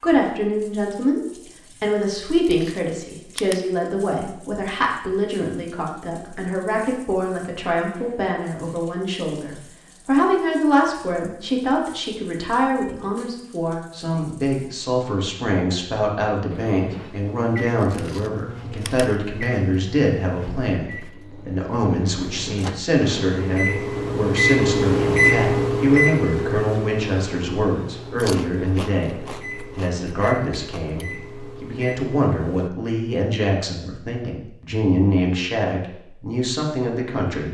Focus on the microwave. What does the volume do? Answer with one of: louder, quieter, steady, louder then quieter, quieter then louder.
louder then quieter.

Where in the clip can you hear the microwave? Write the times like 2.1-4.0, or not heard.
16.4-32.7.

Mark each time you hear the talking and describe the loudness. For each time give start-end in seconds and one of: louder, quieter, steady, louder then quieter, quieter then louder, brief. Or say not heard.
0.0-37.4 steady.